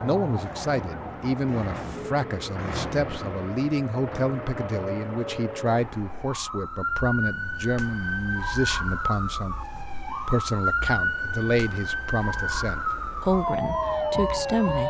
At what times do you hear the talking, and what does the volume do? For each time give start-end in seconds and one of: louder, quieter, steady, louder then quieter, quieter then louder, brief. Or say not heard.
0.0-14.8 steady.